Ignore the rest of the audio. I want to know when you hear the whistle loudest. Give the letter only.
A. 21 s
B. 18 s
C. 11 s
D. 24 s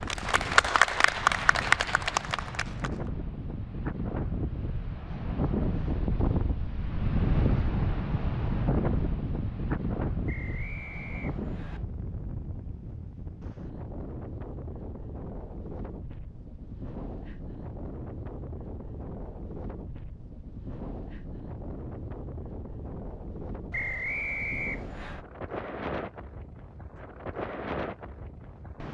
D.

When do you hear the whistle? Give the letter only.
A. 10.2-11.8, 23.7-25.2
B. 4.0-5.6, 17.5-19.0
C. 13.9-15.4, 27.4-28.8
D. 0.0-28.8
A.